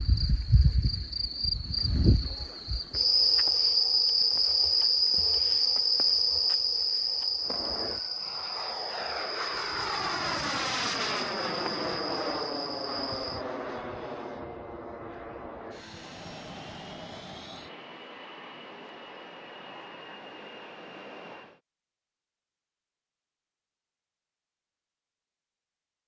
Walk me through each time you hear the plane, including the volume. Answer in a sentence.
You can hear the plane from 7.4 to 21.6 s, getting quieter.